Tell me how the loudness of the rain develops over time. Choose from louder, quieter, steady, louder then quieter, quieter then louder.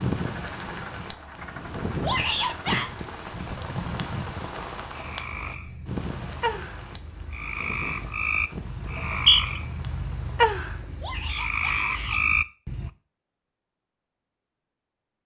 quieter.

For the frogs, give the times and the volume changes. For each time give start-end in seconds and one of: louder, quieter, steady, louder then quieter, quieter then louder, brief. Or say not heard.
0.0-12.9 louder.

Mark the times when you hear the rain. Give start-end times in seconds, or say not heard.
0.0-10.5.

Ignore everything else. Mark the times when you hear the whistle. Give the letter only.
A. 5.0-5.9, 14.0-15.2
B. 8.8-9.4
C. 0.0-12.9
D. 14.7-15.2
B.